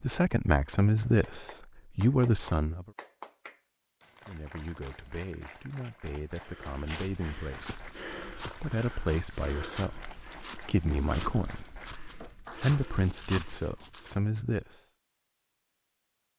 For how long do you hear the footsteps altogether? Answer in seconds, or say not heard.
8 s.